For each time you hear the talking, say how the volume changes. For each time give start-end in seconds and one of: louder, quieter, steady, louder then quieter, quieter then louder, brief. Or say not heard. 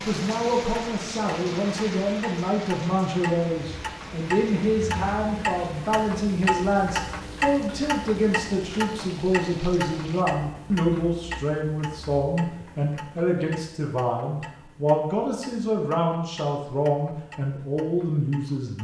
0.0-18.8 steady.